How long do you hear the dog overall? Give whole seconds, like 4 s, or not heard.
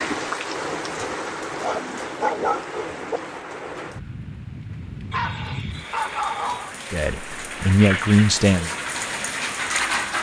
3 s.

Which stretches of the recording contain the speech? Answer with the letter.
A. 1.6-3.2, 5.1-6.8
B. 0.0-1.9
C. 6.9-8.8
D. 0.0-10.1
C.